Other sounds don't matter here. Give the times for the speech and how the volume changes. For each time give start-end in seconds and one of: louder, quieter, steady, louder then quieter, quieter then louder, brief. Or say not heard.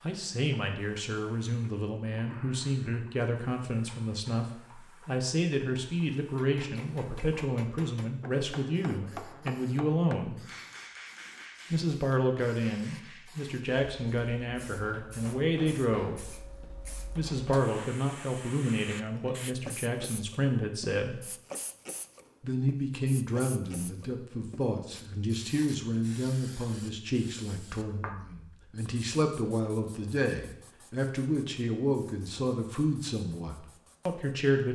0.0-10.4 steady
11.7-21.2 steady
22.4-34.7 steady.